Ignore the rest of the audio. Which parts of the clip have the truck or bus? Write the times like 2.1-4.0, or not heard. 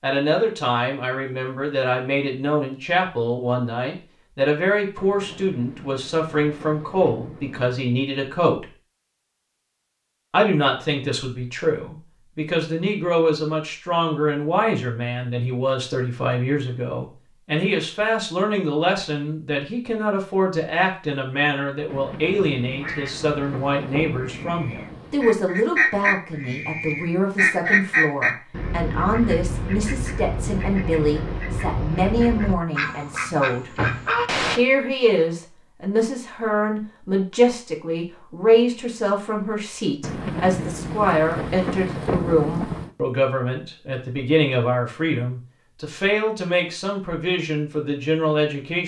not heard.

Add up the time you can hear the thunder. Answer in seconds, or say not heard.
9 s.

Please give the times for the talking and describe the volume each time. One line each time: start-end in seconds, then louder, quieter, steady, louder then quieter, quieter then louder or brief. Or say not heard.
0.0-8.7 steady
10.3-33.8 steady
34.5-48.8 steady.